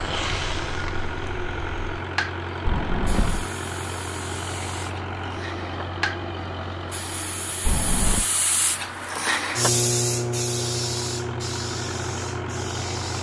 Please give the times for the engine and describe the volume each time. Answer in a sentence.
The engine can be heard from 0.0 to 13.1 s, getting quieter then louder.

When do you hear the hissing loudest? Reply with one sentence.
The loudest moment of the hissing is at 10 seconds.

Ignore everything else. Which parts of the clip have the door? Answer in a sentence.
The door can be heard from 2.6 to 3.5 s and from 7.7 to 8.2 s.